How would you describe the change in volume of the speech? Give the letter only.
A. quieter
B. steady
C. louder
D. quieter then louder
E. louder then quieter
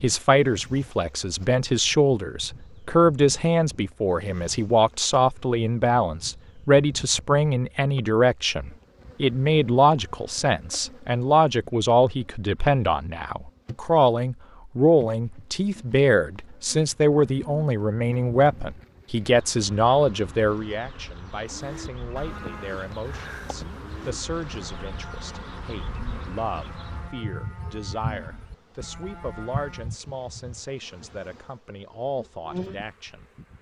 A.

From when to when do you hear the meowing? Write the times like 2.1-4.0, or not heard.
not heard.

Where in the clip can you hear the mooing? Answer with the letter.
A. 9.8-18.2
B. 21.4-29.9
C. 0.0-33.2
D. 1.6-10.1
B.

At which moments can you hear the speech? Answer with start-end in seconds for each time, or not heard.
0.0-33.2.